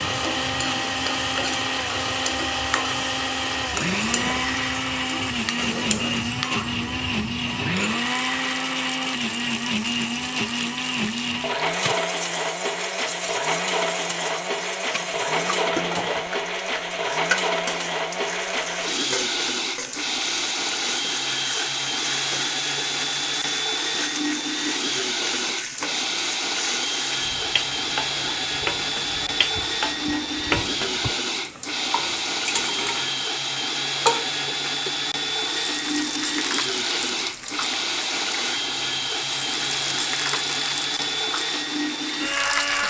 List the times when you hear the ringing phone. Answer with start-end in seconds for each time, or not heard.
not heard.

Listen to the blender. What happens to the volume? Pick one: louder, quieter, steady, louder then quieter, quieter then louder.
steady.